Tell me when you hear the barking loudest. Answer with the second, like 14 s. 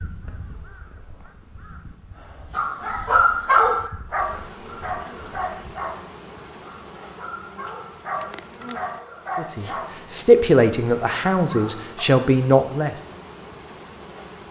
4 s.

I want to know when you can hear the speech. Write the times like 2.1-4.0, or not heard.
9.3-13.0.